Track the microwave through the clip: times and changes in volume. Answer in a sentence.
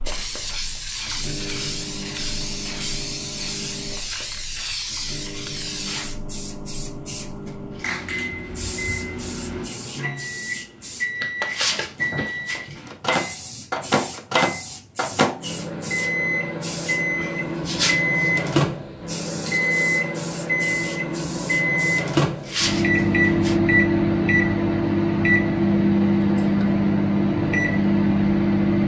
The microwave can be heard from 0.0 to 28.8 s, getting louder.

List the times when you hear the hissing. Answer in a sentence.
You can hear the hissing from 0.1 to 23.6 s.